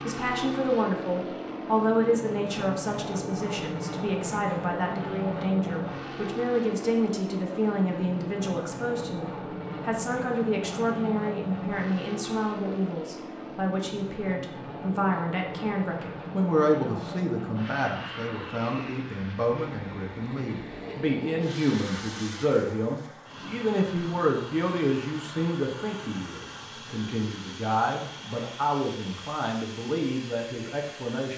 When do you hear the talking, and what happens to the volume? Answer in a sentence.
The talking can be heard from 0.0 to 31.3 s, at a steady volume.